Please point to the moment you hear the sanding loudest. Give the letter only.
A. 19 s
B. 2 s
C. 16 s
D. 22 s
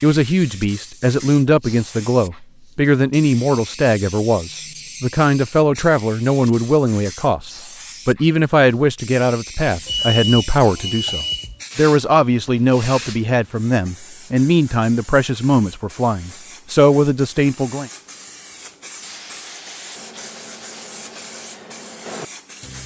D.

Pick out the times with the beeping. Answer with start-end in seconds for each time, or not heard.
9.8-11.6.